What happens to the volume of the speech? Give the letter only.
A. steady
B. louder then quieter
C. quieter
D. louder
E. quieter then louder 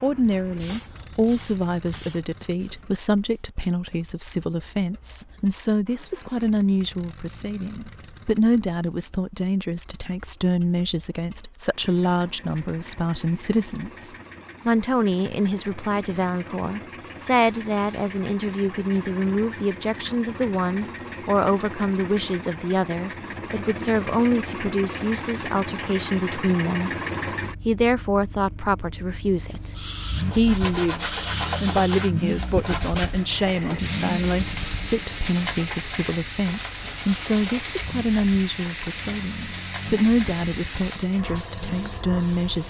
A.